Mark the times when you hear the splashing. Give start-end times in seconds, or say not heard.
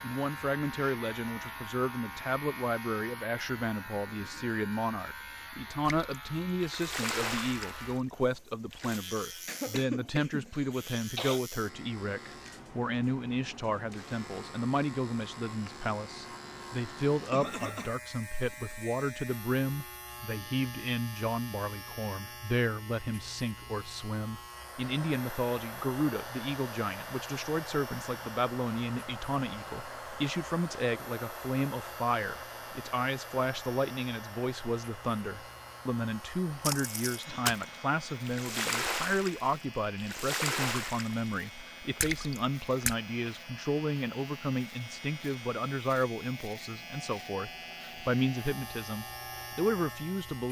5.8-9.0, 36.6-43.0.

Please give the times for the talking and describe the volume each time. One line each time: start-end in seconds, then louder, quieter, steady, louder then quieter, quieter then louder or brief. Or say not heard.
0.0-50.4 steady.